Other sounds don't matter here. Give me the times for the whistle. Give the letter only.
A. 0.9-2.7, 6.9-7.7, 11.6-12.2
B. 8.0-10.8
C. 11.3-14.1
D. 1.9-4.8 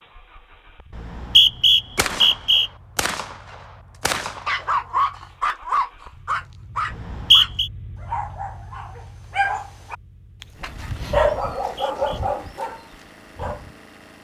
A.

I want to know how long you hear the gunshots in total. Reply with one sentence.
You can hear the gunshots for 3 seconds altogether.